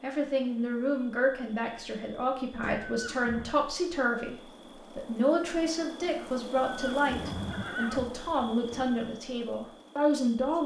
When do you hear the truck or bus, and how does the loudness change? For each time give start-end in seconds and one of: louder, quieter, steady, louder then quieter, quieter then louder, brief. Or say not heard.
not heard.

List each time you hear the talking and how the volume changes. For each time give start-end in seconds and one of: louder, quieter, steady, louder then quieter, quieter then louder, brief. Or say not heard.
0.0-10.6 steady.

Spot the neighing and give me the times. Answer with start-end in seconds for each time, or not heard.
2.9-3.5, 6.7-8.5.